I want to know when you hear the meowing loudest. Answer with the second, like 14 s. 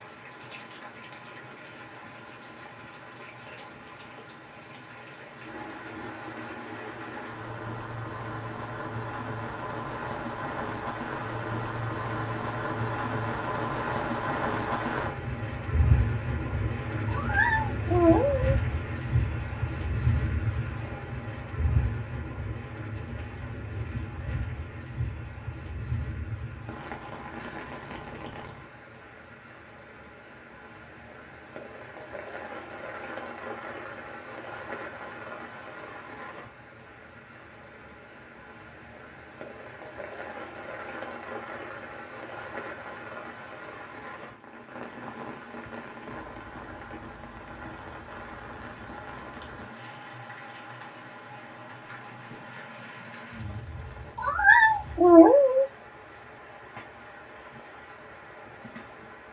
55 s.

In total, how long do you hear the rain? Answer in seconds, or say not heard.
59 s.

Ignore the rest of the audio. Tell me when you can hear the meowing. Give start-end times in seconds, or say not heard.
17.1-18.6, 54.1-55.6.